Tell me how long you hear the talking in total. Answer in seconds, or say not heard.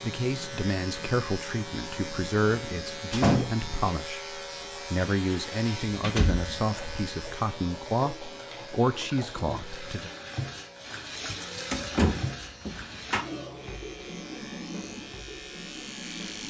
10 s.